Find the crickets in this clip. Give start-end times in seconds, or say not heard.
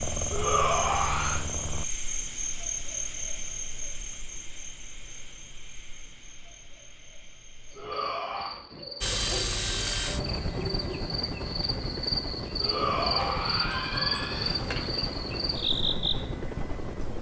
0.0-17.1.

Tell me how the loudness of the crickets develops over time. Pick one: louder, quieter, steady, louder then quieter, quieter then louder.
quieter then louder.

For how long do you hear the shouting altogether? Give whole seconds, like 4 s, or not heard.
4 s.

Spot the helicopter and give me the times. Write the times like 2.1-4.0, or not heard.
0.0-1.9, 9.0-17.1.